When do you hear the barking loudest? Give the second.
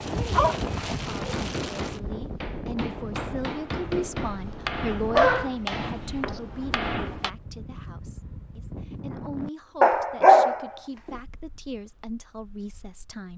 10 s.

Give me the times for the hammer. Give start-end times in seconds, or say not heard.
1.1-7.3.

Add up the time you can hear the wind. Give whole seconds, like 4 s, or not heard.
13 s.